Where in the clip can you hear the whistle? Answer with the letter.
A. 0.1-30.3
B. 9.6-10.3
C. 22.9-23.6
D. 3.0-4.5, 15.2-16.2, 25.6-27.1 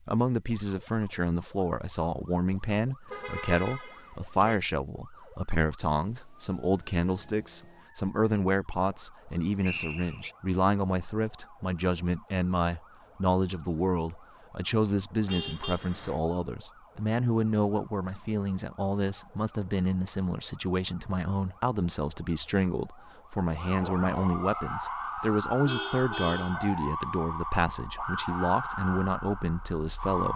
B.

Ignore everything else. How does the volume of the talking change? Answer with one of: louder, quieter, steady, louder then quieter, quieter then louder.
steady.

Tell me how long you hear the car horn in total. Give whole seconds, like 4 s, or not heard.
4 s.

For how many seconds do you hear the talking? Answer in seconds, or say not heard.
30 s.